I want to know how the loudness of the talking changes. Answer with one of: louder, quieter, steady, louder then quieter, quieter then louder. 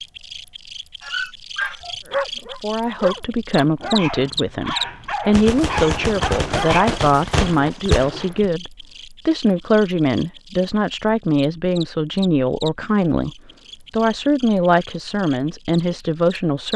steady.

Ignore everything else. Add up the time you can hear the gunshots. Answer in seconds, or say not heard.
3 s.